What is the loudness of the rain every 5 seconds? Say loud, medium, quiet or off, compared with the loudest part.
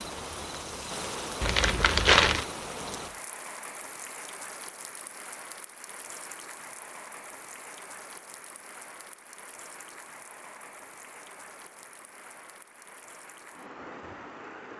loud, medium, medium.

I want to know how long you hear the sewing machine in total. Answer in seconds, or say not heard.
not heard.